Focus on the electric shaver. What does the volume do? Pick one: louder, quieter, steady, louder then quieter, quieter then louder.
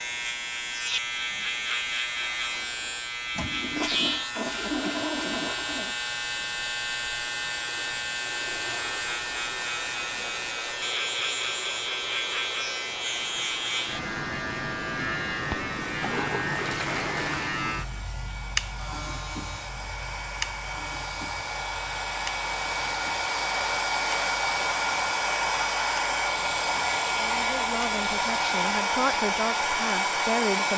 quieter.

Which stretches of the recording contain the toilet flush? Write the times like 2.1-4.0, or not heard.
3.4-6.0, 16.0-17.6.